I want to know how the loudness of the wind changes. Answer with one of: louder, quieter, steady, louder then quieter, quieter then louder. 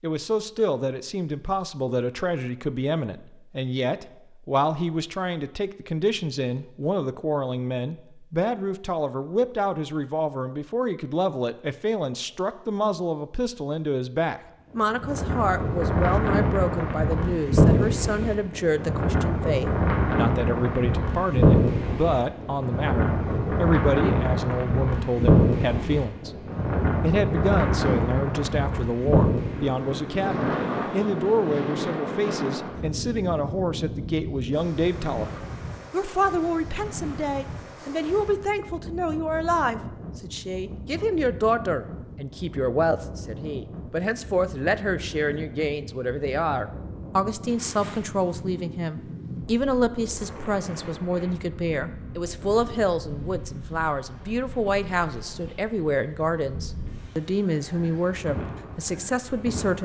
quieter.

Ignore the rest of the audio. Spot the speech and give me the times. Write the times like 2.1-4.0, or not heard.
0.0-26.4, 27.0-59.8.